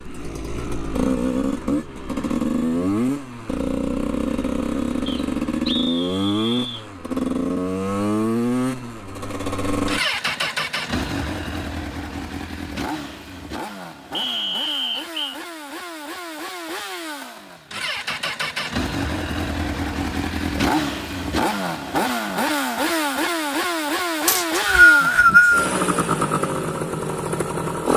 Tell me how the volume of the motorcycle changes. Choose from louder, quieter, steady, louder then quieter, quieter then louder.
quieter then louder.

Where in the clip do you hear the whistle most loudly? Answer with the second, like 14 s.
25 s.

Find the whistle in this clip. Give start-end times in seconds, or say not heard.
5.0-6.8, 14.1-15.4, 24.2-25.7.